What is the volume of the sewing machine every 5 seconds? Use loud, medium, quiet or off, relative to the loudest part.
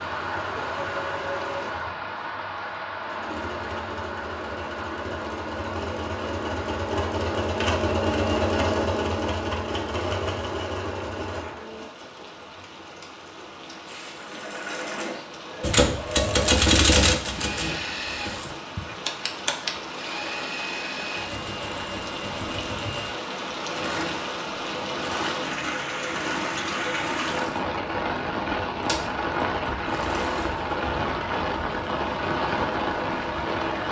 medium, loud, medium, medium, medium, medium, medium.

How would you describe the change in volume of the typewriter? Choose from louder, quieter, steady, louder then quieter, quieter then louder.
quieter then louder.